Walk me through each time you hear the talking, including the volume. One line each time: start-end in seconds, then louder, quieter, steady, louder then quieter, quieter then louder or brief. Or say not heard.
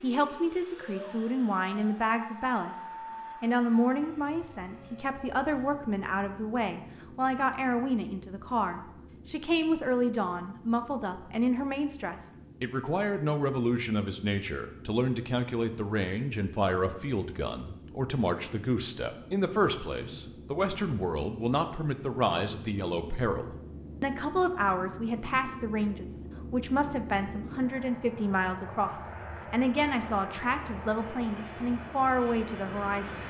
0.0-33.2 steady.